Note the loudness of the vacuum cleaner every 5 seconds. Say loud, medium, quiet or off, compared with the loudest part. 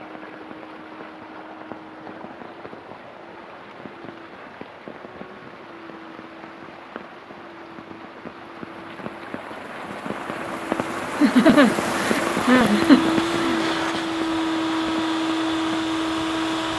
quiet, quiet, loud, loud.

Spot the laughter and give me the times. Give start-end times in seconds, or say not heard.
11.2-13.7.